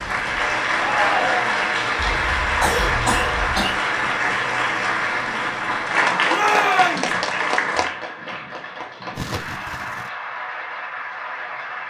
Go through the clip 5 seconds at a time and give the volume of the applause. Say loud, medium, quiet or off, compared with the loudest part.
loud, loud, medium.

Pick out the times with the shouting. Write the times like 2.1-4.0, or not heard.
0.8-1.6, 6.3-7.1.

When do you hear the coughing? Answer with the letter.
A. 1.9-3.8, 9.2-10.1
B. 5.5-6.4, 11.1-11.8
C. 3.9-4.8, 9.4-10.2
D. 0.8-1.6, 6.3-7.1
A.